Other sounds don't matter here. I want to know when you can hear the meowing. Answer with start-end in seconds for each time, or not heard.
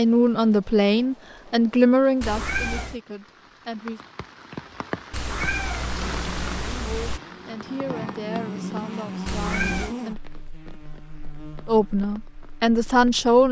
2.2-3.0, 5.1-7.2, 9.2-9.9.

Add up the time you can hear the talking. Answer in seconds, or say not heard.
9 s.